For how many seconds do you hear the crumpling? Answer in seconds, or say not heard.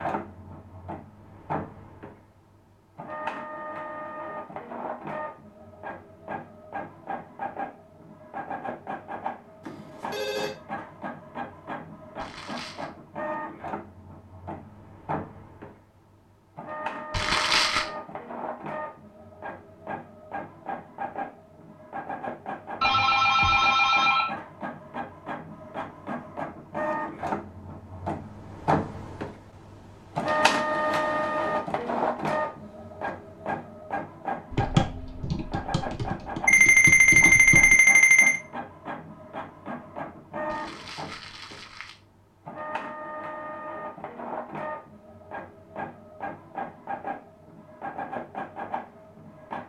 3 s.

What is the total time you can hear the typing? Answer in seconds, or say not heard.
3 s.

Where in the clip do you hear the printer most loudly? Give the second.
31 s.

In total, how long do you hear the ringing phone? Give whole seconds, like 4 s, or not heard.
4 s.